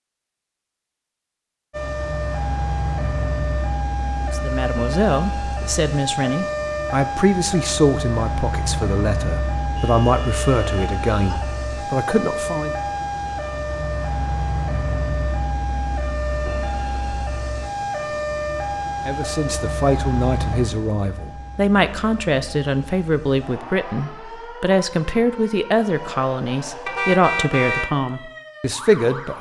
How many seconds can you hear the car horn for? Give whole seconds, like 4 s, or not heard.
3 s.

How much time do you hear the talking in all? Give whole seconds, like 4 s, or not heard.
19 s.